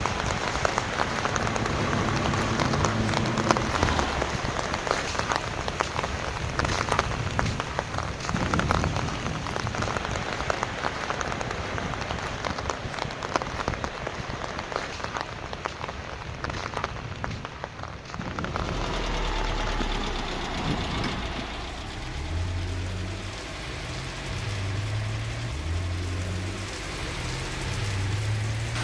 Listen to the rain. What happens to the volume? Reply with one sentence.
The volume of the rain goes down.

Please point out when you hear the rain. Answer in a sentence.
The rain can be heard from 0.0 to 28.8 s.